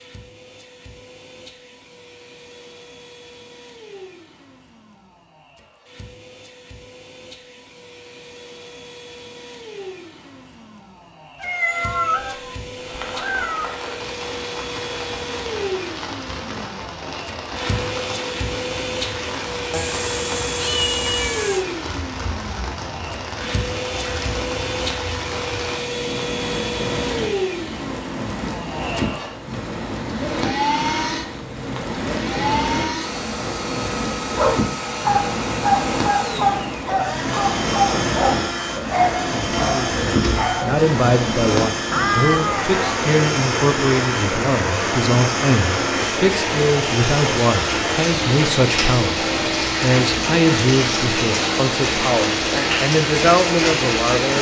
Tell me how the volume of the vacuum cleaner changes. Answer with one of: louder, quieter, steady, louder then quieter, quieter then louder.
louder.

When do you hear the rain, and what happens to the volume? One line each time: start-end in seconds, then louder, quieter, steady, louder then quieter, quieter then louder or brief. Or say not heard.
12.8-54.3 louder.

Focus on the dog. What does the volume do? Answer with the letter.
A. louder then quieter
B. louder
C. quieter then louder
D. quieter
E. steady
D.